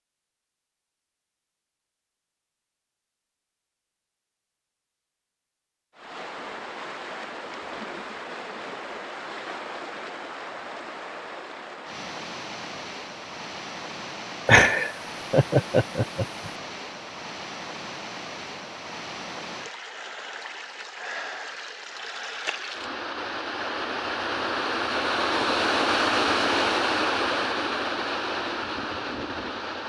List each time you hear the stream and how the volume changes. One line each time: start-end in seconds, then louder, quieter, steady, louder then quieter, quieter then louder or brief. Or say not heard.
6.0-29.8 louder.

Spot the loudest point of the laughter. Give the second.
15 s.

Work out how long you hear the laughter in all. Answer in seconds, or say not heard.
2 s.